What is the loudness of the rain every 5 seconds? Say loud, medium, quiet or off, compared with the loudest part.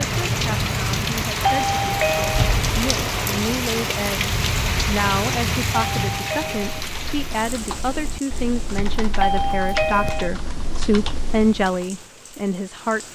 loud, medium, quiet.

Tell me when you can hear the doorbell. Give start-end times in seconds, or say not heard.
1.4-2.5, 6.0-6.8, 9.2-10.3.